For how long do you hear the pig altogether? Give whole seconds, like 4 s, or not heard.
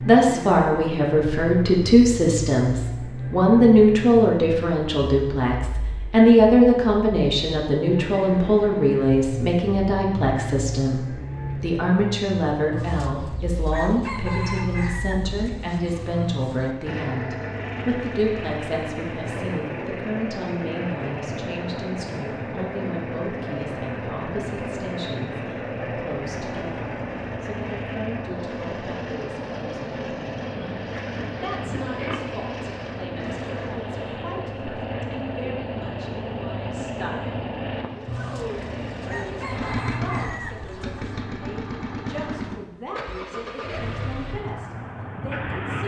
2 s.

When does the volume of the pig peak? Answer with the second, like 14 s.
32 s.